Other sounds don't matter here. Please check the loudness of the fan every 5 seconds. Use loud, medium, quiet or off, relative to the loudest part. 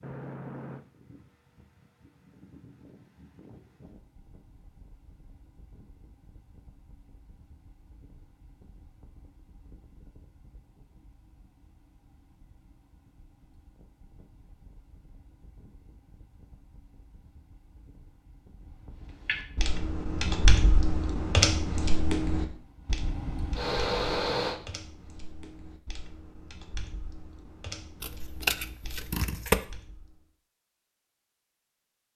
quiet, quiet, quiet, quiet, loud, off, off.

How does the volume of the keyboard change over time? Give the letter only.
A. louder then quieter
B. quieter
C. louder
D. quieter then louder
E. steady
B.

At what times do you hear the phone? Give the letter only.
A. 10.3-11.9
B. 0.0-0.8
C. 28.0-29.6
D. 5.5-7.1
B.